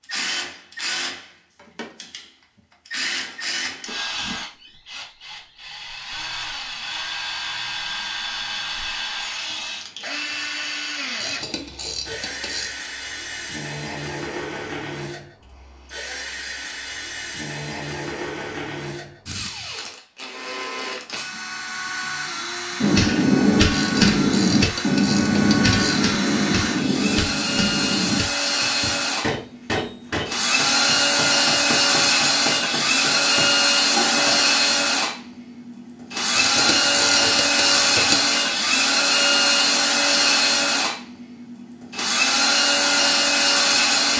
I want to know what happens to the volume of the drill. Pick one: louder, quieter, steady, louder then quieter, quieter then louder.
louder.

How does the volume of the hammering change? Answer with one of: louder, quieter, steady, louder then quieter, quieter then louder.
quieter.